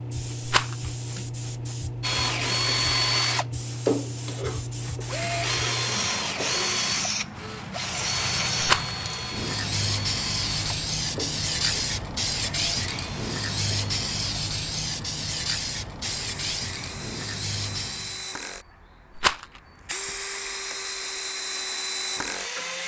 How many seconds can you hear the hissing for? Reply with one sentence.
You can hear the hissing for 18 seconds altogether.